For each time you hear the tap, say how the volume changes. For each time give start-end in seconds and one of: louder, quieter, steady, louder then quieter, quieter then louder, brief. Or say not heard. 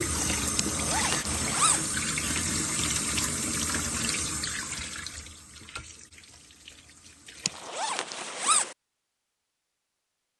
0.0-7.7 quieter.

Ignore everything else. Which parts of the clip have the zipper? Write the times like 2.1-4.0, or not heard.
0.6-1.9, 7.5-8.8.